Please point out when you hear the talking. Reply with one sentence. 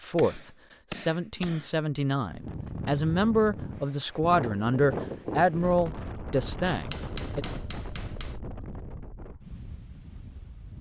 You can hear the talking from 0.0 to 7.5 s.